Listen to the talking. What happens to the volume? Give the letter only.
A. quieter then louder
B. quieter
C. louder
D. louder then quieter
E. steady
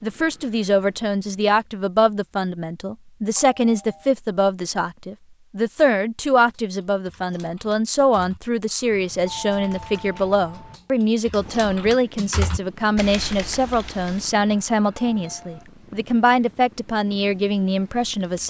E.